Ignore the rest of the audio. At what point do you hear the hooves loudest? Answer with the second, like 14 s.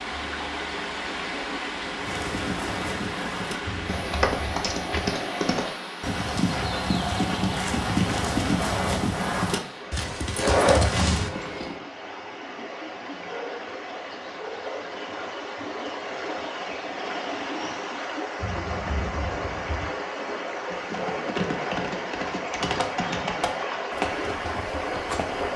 11 s.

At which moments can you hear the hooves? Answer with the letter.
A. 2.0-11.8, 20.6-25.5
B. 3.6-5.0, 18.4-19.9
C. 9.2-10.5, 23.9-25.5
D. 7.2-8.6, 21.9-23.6
A.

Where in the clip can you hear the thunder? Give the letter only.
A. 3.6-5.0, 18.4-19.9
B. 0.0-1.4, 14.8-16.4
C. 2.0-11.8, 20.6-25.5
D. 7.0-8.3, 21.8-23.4
A.